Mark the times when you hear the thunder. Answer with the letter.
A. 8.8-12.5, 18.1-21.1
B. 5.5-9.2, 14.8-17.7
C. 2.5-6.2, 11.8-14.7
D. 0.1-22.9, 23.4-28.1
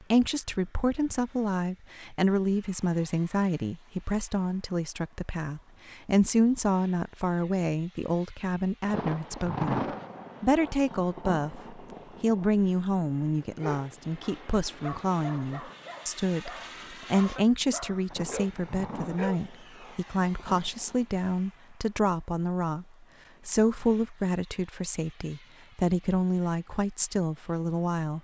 A.